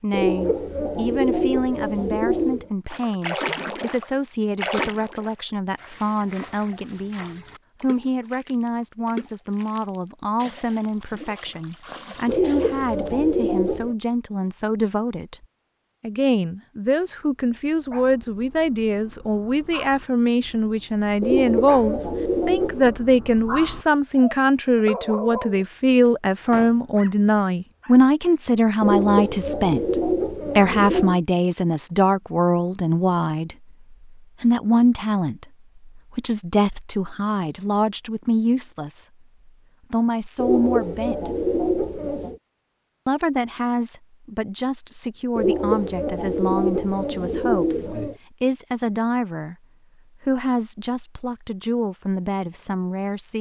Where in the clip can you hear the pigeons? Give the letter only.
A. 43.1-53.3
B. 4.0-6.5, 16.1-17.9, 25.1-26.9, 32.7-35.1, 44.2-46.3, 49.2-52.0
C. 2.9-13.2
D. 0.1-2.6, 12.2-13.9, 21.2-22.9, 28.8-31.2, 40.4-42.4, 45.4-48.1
D.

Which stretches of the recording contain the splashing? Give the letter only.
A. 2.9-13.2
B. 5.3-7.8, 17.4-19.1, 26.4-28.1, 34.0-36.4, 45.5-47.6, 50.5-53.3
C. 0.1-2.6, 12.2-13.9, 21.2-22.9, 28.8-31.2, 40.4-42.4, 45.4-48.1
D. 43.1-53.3
A.